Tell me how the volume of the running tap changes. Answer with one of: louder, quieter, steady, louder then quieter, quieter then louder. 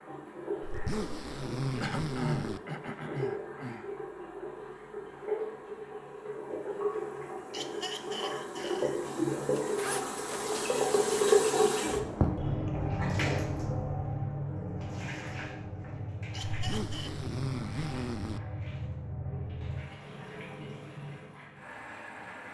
louder then quieter.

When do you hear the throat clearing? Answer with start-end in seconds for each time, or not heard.
1.8-3.9, 7.5-9.0, 16.3-17.1.